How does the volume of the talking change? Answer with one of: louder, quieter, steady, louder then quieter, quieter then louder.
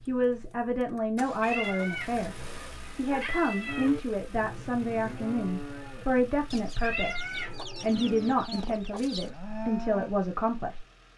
steady.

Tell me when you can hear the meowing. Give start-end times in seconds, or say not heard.
1.4-4.0, 6.8-7.5.